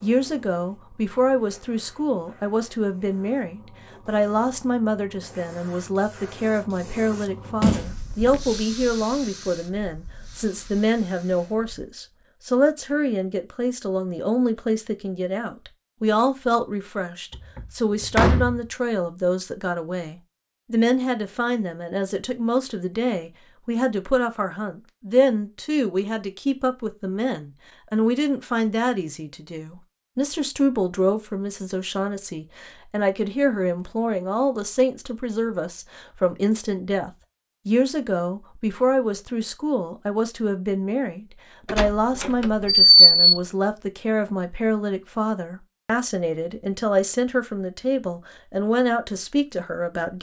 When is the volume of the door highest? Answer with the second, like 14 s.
43 s.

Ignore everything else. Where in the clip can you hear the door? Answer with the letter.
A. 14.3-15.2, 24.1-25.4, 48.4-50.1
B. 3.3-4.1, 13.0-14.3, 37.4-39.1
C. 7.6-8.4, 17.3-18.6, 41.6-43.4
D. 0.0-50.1
C.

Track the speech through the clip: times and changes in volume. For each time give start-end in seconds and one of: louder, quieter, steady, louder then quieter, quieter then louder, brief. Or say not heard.
0.0-50.1 steady.